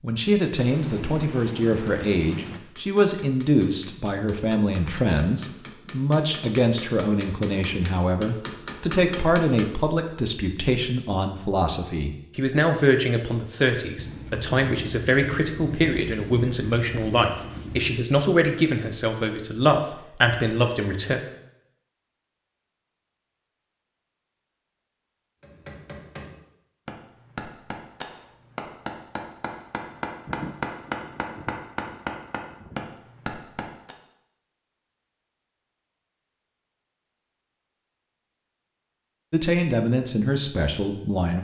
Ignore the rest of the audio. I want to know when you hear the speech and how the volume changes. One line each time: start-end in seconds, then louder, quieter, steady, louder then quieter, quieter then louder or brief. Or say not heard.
0.0-21.2 steady
39.3-41.3 brief.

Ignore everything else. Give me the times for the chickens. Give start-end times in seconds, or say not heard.
not heard.